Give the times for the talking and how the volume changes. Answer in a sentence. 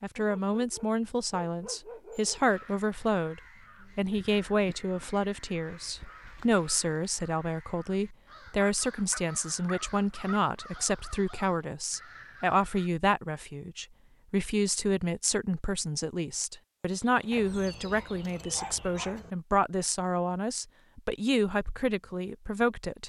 You can hear the talking from 0.0 to 23.0 s, at a steady volume.